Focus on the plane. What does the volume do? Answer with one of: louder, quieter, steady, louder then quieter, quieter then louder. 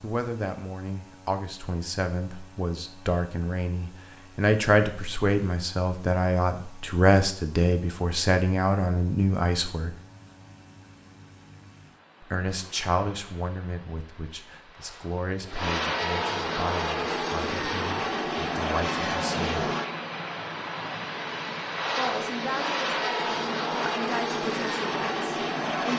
louder.